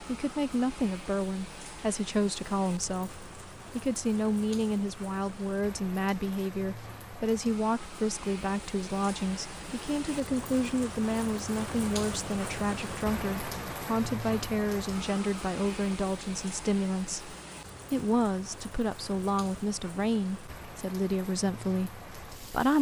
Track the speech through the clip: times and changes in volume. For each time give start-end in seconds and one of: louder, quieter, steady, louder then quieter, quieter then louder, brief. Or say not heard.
0.0-22.7 steady.